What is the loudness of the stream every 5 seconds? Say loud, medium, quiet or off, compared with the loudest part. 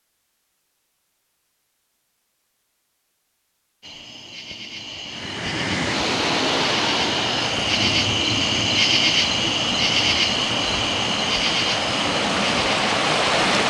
off, loud, loud.